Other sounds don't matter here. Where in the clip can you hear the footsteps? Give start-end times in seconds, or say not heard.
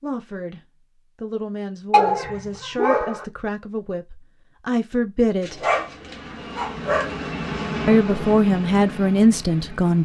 not heard.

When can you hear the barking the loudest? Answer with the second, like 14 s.
2 s.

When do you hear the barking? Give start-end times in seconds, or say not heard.
1.9-3.2, 5.4-7.2.